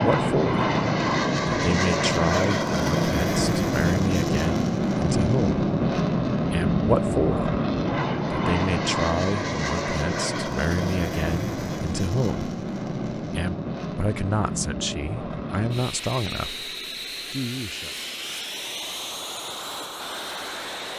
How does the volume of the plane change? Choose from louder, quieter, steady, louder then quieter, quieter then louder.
quieter.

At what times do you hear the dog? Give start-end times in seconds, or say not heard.
not heard.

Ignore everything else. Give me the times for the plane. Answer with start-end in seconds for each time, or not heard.
0.0-20.9.